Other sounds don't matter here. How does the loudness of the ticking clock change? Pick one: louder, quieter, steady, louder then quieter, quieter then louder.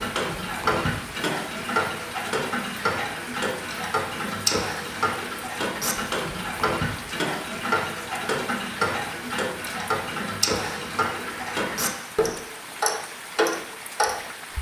steady.